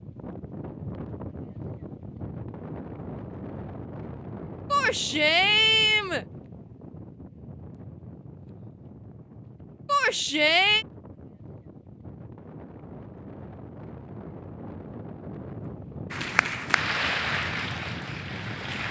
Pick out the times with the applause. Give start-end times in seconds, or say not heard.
16.1-18.8.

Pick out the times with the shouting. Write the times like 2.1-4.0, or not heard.
4.7-6.2, 9.8-10.8.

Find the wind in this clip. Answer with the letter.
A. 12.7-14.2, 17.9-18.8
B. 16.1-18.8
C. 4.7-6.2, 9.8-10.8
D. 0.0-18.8
D.